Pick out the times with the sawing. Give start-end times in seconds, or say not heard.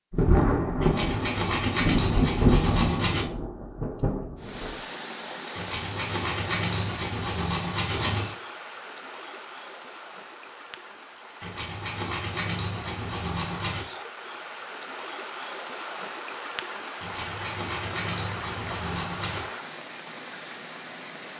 0.8-3.2, 5.5-8.3, 11.4-13.8, 17.0-19.5.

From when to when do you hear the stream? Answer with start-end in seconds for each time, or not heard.
4.3-21.3.